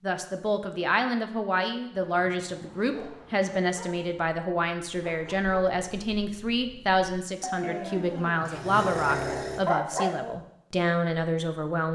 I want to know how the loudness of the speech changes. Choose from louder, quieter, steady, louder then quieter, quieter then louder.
steady.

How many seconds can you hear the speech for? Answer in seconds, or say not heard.
12 s.